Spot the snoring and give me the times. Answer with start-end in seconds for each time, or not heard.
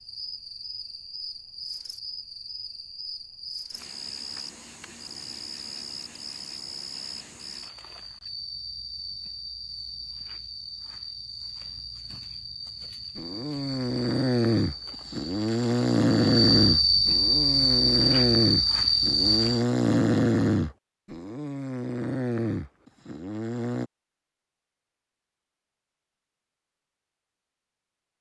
13.2-23.9.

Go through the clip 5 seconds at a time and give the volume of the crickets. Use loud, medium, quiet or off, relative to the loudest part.
quiet, quiet, quiet, loud, off, off.